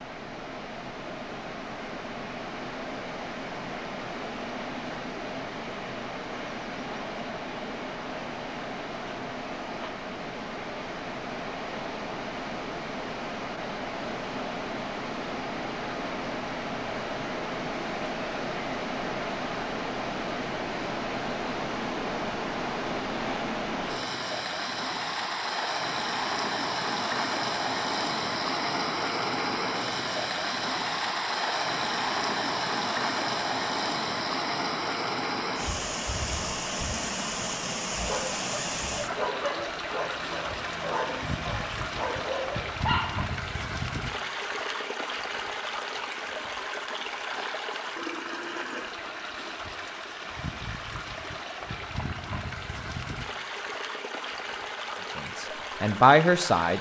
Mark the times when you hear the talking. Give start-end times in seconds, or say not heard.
55.1-56.7.